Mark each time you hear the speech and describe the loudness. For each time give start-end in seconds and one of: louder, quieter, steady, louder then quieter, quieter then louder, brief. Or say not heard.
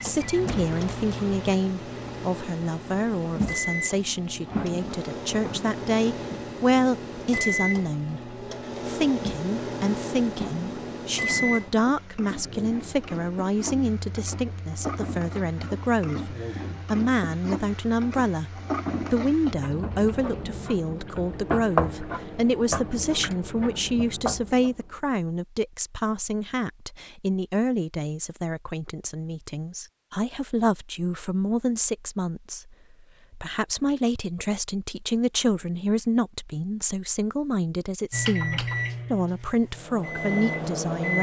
0.0-41.1 steady.